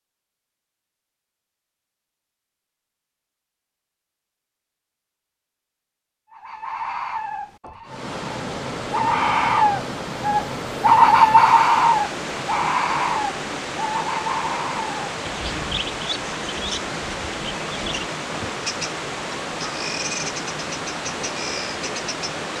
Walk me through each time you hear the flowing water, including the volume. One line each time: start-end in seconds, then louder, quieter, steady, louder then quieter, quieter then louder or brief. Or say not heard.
7.8-22.5 steady.